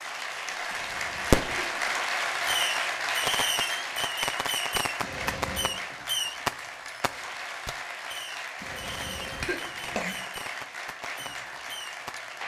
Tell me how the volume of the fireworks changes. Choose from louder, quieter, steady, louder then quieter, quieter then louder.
quieter.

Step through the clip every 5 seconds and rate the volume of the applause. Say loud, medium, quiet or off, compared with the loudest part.
loud, medium, medium.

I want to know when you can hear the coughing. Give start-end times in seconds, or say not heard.
0.7-1.8, 5.0-5.8, 8.6-10.2.